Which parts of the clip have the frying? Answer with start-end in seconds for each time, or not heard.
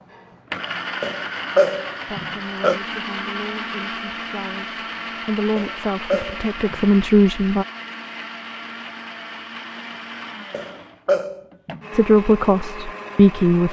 not heard.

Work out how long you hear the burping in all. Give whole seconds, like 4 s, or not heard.
4 s.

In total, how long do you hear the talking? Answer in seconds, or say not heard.
7 s.